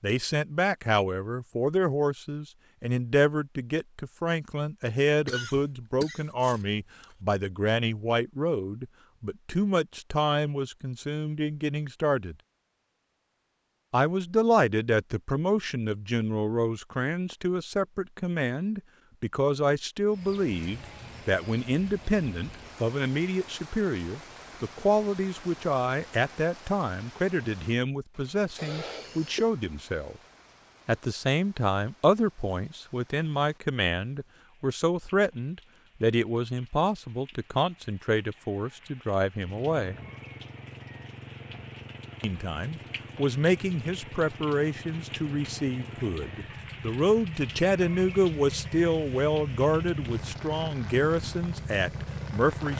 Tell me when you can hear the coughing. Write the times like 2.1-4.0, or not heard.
5.2-7.2, 28.6-29.4.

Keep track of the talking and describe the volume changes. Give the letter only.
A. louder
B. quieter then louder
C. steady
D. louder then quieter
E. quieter
C.